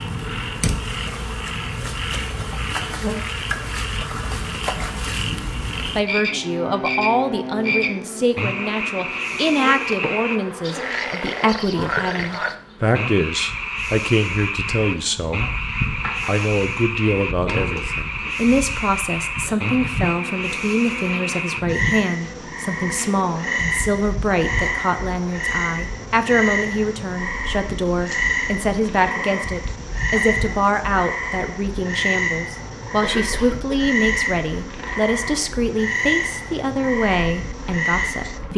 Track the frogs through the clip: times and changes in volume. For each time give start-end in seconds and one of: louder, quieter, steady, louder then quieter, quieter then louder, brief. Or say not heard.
0.0-38.4 steady.